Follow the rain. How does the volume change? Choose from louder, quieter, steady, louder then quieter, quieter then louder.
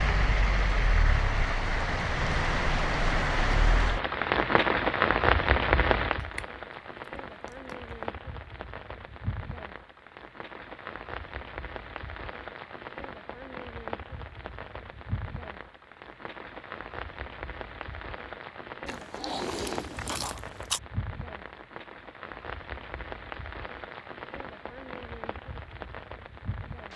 quieter.